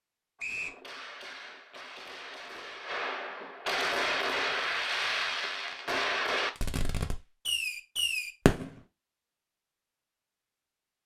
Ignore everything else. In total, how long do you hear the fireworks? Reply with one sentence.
The fireworks can be heard for 8 seconds in total.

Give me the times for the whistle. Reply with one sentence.
The whistle can be heard from 0.3 to 0.8 s.